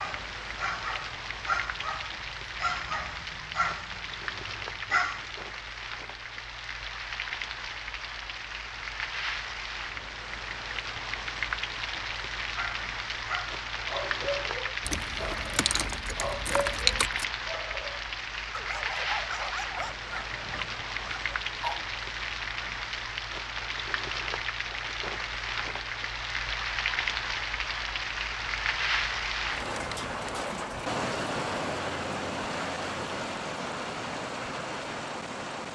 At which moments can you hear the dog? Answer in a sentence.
You can hear the dog from 0.0 to 5.3 s and from 12.6 to 21.9 s.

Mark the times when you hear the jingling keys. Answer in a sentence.
You can hear the jingling keys from 14.8 to 17.2 s.